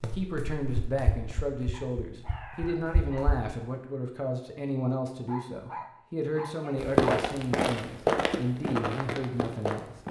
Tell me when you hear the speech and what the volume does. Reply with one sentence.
You can hear the speech from 0.0 to 9.9 s, at a steady volume.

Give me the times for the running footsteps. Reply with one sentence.
The running footsteps can be heard from 0.0 to 3.5 s and from 6.8 to 10.0 s.